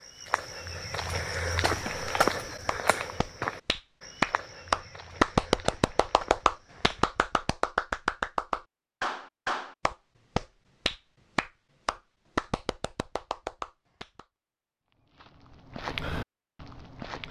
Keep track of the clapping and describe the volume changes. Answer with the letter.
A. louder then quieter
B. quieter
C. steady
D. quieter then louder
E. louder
B.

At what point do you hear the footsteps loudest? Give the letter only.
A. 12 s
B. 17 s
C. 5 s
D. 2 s
D.